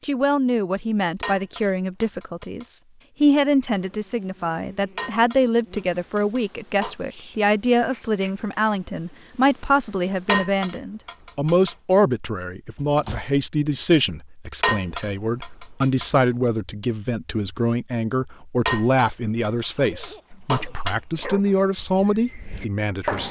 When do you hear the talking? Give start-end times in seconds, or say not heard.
0.0-23.2.